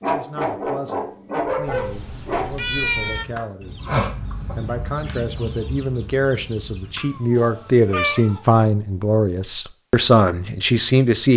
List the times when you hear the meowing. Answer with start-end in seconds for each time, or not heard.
1.6-3.2, 7.0-8.2.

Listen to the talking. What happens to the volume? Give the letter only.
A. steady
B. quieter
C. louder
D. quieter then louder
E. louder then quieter
C.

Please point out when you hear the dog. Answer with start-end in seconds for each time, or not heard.
0.0-2.5.